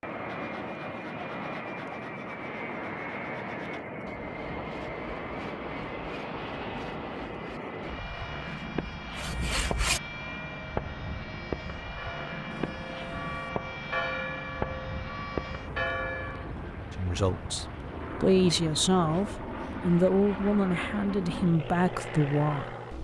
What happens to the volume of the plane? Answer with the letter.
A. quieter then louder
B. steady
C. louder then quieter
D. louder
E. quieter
B.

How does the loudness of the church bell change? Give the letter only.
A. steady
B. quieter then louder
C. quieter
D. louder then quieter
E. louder
E.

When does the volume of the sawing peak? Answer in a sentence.
The loudest moment of the sawing is at 10 seconds.